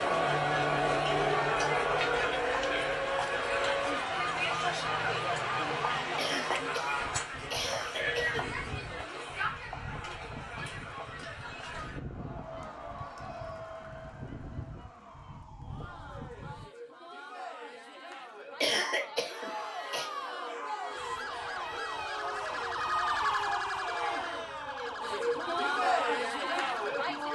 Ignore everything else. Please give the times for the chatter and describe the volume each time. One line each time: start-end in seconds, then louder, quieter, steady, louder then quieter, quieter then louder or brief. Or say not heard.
0.0-27.3 quieter then louder.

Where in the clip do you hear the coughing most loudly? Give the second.
19 s.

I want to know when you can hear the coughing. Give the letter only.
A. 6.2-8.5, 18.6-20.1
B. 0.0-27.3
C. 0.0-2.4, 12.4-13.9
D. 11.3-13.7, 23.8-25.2
A.